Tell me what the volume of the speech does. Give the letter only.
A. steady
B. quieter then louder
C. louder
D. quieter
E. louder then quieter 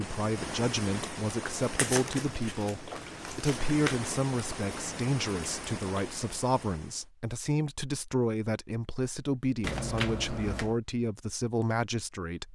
A.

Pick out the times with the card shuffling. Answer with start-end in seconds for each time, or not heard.
1.8-4.0, 9.6-10.8.